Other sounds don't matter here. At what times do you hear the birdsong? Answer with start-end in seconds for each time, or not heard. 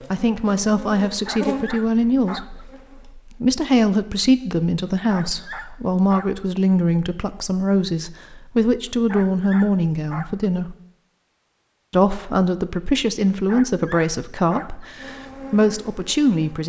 not heard.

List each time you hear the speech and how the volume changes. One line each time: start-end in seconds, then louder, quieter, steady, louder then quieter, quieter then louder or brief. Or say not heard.
0.1-10.8 steady
11.9-16.6 quieter then louder.